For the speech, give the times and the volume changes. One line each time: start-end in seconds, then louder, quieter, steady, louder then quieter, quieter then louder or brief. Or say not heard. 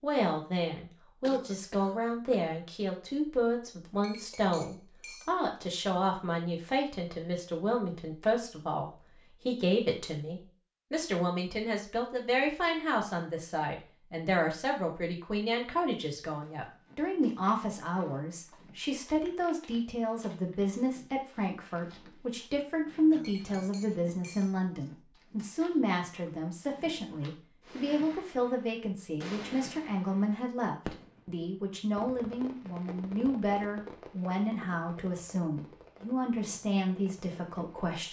0.0-38.0 steady.